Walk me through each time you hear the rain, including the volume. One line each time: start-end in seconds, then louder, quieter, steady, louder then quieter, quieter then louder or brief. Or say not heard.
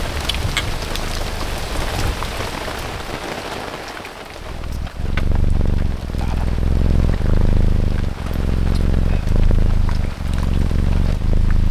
0.0-11.6 quieter.